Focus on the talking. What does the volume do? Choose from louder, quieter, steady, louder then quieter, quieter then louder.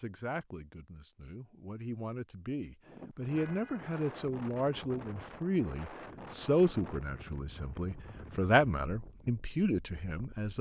louder.